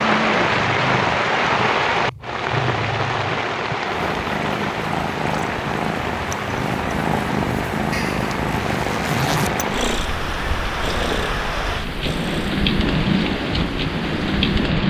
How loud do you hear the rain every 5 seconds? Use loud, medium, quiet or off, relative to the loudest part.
loud, medium, loud.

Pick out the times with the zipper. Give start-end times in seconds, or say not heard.
7.9-9.6.